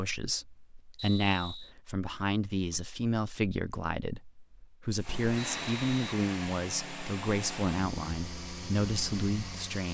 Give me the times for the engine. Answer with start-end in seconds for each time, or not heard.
4.9-9.9.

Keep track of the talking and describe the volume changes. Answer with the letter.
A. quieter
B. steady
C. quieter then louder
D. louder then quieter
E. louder
B.